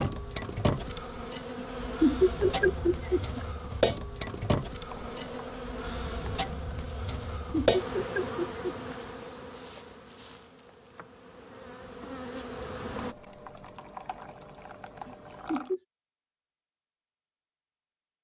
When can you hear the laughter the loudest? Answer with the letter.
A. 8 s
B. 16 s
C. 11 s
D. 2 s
D.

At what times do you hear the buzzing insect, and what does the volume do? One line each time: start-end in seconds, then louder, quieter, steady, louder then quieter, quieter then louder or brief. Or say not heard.
0.0-13.2 quieter.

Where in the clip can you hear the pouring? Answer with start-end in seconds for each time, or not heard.
4.8-5.7, 12.9-15.8.